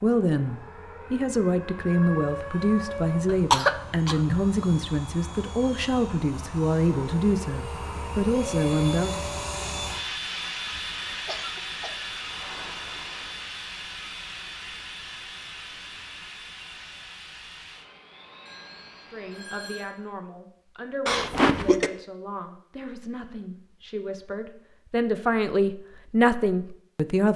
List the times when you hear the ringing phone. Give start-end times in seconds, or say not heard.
18.4-19.9.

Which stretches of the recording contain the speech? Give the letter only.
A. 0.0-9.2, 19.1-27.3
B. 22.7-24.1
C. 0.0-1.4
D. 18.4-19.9
A.